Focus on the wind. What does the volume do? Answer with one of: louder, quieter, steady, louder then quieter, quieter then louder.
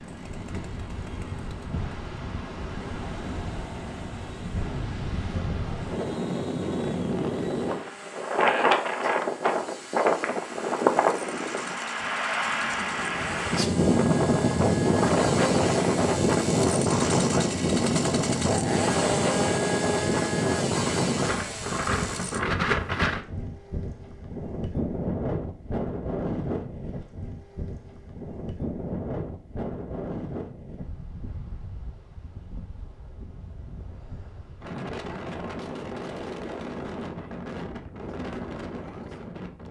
louder then quieter.